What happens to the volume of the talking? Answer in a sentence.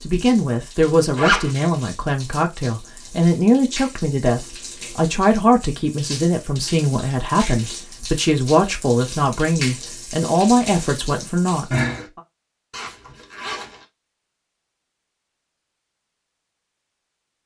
The volume of the talking stays about the same.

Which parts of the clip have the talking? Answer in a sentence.
You can hear the talking from 0.0 to 12.2 s.